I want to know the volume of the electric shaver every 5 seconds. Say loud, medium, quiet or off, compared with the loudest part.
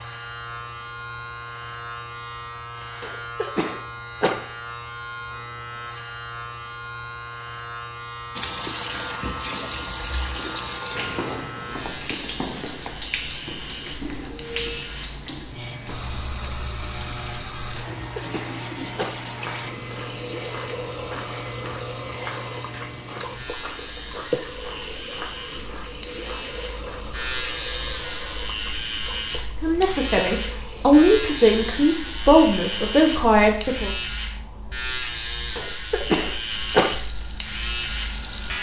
medium, medium, medium, medium, medium, loud, loud, loud.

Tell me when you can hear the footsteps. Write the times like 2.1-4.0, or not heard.
19.3-27.1.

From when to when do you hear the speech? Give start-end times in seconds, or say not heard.
29.6-33.9.